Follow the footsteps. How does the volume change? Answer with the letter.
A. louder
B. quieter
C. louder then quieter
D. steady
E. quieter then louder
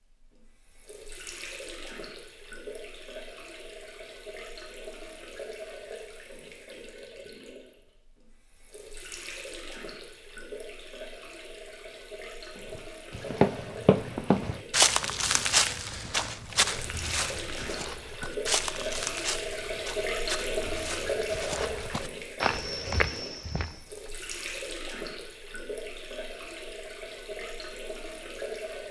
E.